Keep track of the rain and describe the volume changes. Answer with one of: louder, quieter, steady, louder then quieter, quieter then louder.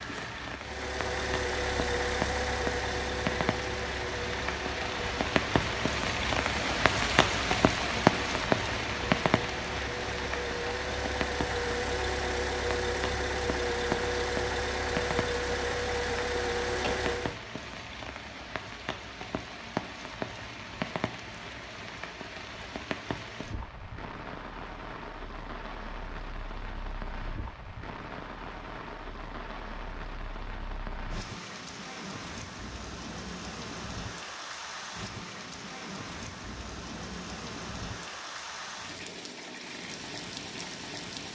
quieter.